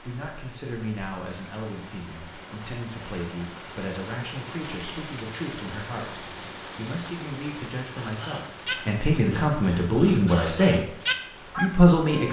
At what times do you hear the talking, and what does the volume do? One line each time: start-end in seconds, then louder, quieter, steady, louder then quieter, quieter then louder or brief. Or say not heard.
0.0-10.9 louder
11.6-12.2 brief.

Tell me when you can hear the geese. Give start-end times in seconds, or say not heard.
8.0-12.2.